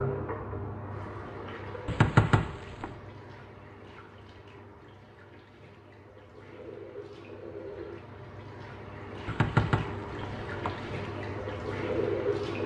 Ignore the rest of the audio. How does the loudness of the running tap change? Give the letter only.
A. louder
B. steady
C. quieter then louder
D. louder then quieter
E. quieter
C.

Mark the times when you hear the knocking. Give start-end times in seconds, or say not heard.
1.9-2.9, 9.2-10.9.